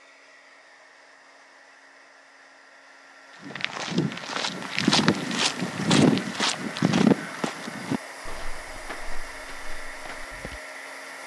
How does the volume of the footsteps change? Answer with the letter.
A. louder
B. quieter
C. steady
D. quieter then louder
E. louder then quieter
B.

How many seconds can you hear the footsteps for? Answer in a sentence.
The footsteps can be heard for 7 seconds in total.